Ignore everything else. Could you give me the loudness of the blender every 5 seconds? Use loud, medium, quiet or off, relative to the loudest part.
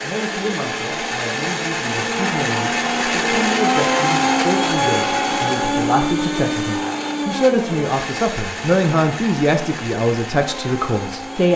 loud, loud, medium.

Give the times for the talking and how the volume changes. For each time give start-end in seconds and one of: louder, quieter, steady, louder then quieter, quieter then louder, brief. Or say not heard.
0.0-11.5 louder.